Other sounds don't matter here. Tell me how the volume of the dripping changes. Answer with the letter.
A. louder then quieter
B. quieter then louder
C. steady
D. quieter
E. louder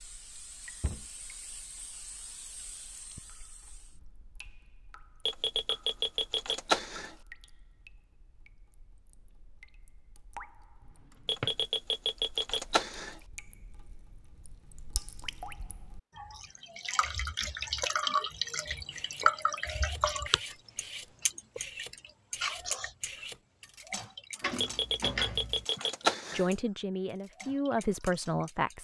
A.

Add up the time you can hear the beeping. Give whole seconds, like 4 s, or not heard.
6 s.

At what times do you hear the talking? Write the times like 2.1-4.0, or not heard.
26.3-28.7.